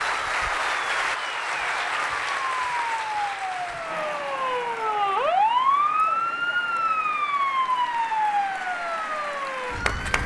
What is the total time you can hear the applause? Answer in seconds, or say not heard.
10 s.